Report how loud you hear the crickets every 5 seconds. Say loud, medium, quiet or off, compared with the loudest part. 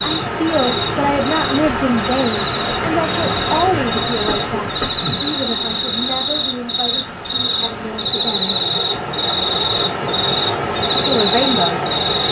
medium, loud, loud.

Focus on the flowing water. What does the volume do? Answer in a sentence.
The loudness of the flowing water goes down, then up.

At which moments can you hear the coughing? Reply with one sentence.
The coughing can be heard from 3.7 to 5.2 s.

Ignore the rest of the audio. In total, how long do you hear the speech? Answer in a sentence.
You can hear the speech for 10 seconds altogether.